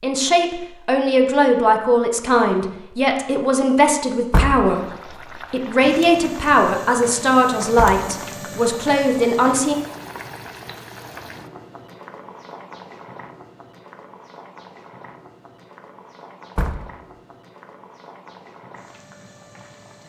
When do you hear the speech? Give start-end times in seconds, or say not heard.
0.0-9.8.